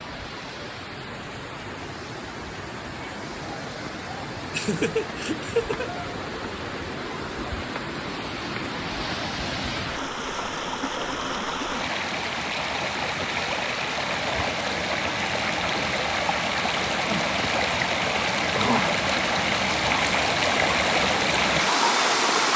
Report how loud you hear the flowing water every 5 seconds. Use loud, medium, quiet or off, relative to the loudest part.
quiet, medium, medium, loud, loud.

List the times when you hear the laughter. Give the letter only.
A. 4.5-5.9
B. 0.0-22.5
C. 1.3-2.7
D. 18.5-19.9
A.